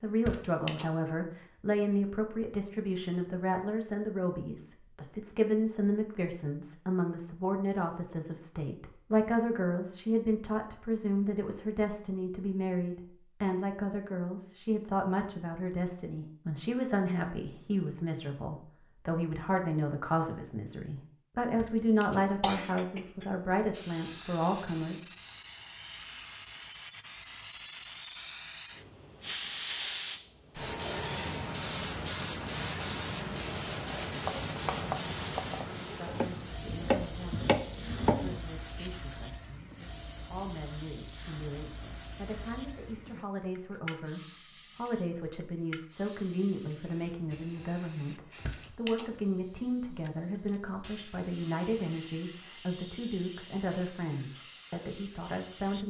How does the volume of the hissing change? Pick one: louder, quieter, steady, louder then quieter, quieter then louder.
quieter.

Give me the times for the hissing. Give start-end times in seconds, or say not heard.
23.7-55.8.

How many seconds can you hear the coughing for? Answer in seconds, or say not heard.
3 s.